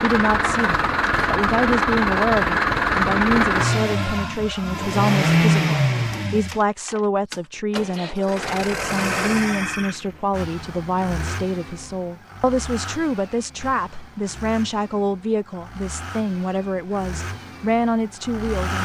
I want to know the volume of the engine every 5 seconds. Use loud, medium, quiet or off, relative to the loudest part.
loud, loud, quiet, quiet.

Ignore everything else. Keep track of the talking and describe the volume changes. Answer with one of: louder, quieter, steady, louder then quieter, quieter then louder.
steady.